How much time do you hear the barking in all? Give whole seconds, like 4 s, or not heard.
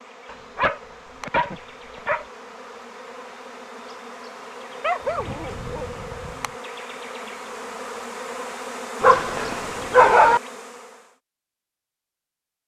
5 s.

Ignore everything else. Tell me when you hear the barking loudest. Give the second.
10 s.